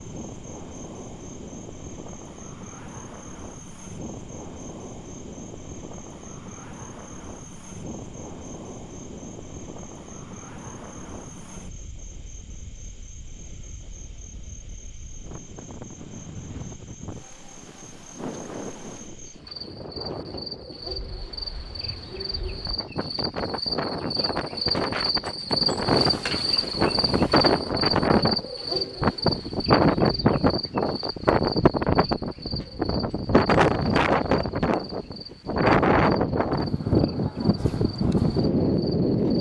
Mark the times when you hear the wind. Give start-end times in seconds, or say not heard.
0.0-39.3.